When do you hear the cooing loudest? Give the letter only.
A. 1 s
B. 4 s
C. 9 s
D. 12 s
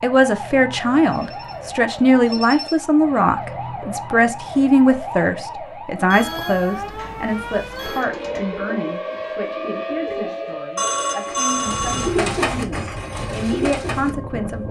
D.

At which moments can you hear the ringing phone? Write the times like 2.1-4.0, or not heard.
1.1-2.8, 6.1-8.1, 10.8-12.2.